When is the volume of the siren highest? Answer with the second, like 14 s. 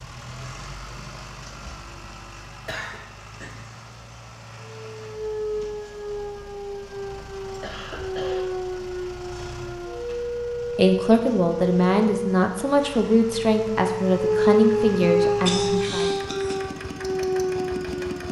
15 s.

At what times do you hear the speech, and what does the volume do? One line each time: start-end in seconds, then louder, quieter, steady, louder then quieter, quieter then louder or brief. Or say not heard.
10.8-16.1 steady.